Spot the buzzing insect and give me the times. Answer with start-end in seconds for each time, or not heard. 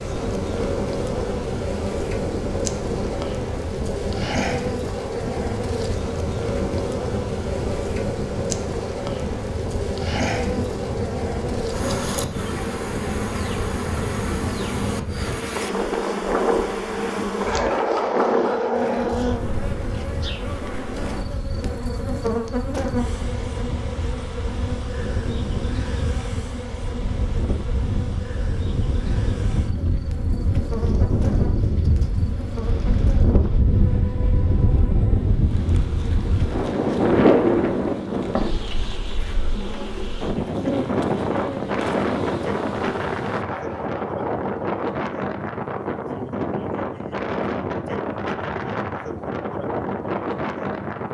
0.0-43.5.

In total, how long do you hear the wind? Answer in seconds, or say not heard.
51 s.